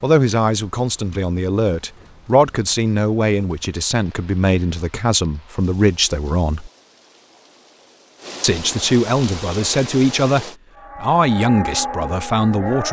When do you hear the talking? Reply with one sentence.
You can hear the talking from 0.0 to 6.7 s and from 8.4 to 12.8 s.